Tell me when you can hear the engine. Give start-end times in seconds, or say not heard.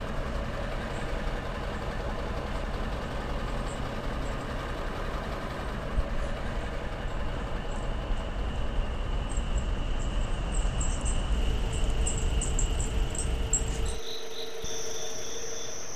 0.0-15.9.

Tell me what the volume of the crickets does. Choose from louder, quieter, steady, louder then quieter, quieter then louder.
louder.